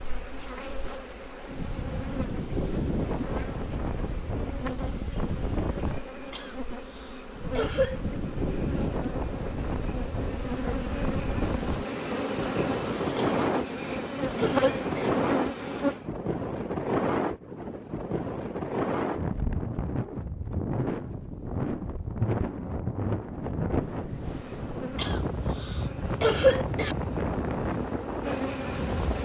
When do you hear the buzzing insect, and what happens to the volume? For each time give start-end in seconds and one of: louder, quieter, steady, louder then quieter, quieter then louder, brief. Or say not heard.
0.0-16.1 louder
24.1-29.2 louder.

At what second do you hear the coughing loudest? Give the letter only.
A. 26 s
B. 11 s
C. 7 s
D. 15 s
A.